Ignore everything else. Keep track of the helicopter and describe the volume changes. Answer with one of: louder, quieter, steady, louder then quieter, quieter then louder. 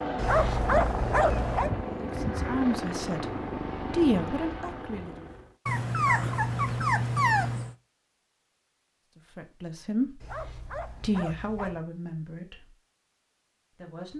quieter.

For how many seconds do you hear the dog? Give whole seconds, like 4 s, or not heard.
5 s.